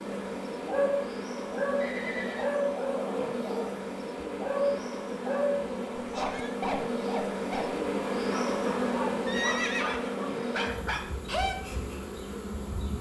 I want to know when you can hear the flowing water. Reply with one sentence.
The flowing water can't be heard in this clip.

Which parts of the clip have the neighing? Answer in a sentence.
The neighing can be heard from 1.8 to 2.5 s, from 6.1 to 6.5 s and from 9.2 to 10.6 s.